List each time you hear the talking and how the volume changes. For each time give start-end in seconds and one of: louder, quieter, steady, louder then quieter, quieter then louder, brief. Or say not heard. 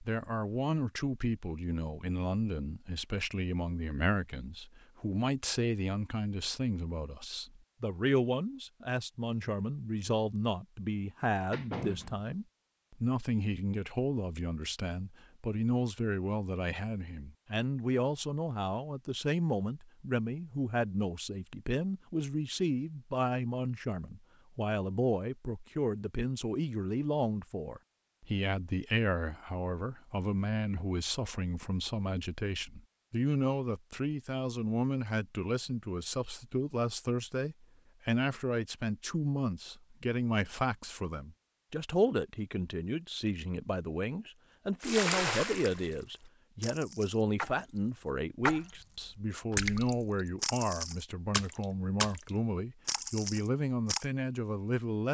0.0-55.0 steady.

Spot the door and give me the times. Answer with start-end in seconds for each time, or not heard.
11.1-12.3.